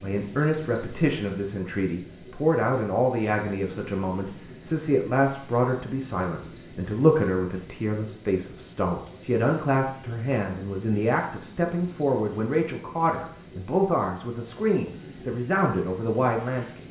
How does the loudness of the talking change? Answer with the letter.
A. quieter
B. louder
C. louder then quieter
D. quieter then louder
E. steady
E.